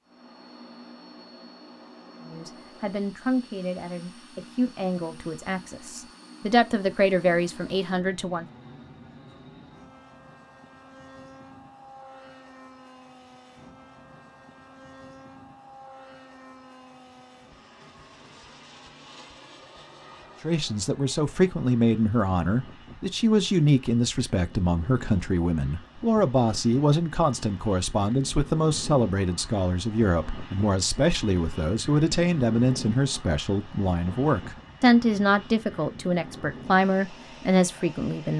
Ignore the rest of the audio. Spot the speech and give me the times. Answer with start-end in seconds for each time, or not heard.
2.2-8.4, 20.4-38.3.